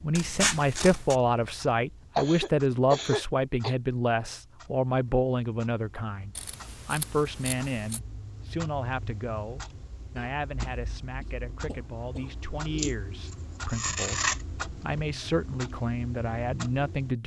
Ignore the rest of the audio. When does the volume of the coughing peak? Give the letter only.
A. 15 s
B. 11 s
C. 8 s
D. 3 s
D.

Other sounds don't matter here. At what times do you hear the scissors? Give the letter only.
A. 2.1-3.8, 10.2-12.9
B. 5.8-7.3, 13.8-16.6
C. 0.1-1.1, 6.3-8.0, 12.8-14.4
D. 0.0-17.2
C.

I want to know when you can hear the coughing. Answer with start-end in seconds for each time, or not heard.
2.1-3.8, 10.2-12.9.